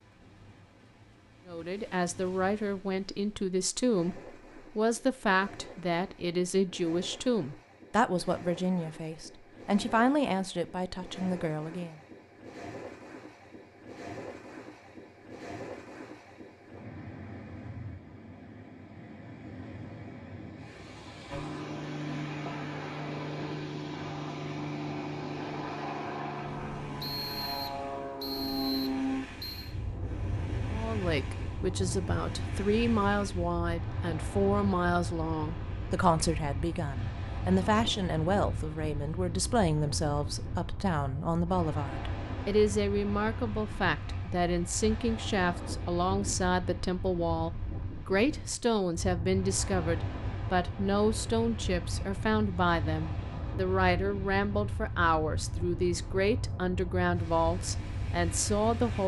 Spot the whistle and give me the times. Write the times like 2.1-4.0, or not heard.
27.0-29.7.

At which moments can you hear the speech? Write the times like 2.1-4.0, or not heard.
1.4-11.9, 30.7-59.0.